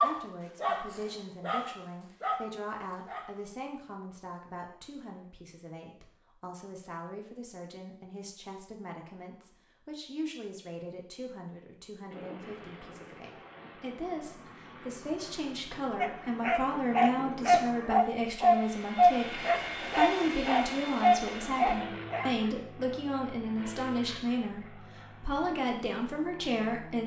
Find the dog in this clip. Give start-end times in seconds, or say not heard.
0.0-3.4, 16.0-22.3.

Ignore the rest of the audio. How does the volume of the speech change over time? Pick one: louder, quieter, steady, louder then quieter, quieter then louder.
louder.